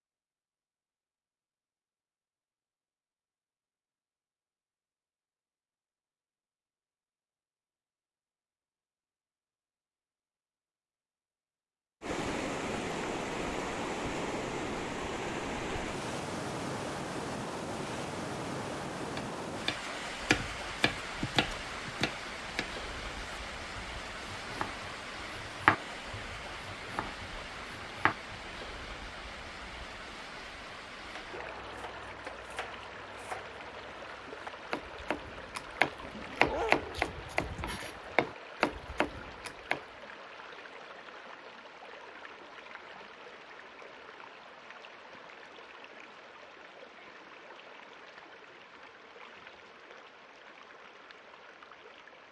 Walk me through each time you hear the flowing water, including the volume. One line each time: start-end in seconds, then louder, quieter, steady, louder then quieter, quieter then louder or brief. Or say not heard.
12.0-52.2 quieter.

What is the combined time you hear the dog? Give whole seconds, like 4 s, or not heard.
2 s.